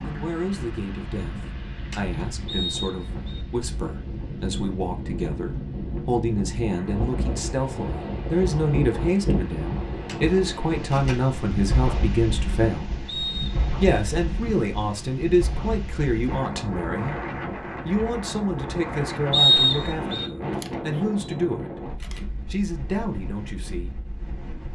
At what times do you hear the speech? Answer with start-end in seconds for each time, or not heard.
0.0-12.9, 13.8-23.9.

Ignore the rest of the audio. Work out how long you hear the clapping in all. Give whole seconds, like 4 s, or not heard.
not heard.